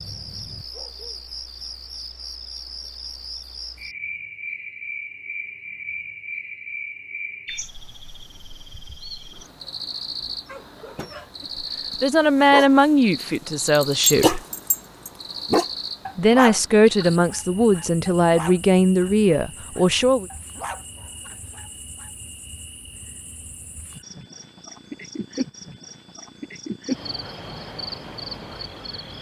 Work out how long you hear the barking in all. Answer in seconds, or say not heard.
12 s.